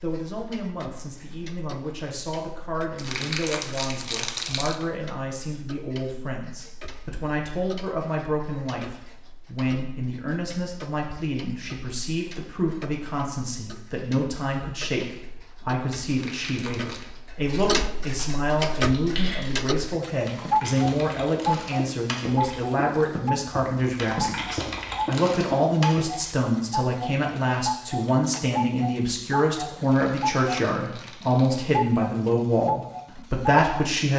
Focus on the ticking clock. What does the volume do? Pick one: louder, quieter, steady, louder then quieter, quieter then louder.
louder.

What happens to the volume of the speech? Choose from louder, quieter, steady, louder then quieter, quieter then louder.
louder.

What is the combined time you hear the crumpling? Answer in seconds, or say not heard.
5 s.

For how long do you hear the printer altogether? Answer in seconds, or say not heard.
not heard.